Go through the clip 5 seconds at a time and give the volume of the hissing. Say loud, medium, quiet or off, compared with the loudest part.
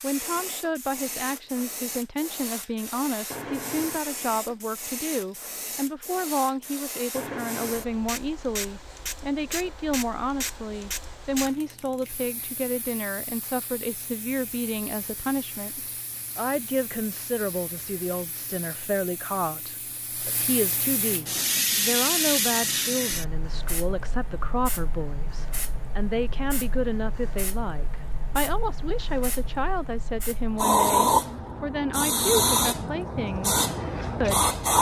quiet, quiet, quiet, quiet, medium, quiet, loud.